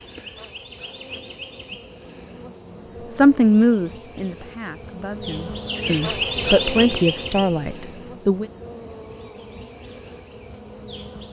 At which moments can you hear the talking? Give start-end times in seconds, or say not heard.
3.1-8.4.